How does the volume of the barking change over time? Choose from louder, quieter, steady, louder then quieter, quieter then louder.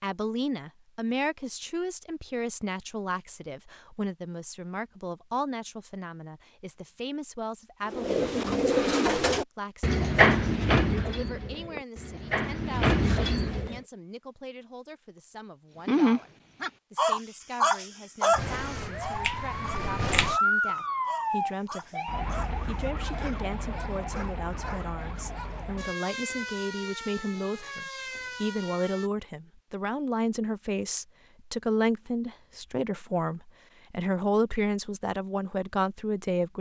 quieter.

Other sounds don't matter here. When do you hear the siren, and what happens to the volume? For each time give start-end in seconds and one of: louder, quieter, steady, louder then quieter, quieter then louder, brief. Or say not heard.
18.3-29.1 quieter.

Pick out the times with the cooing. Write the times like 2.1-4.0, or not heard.
7.9-13.8.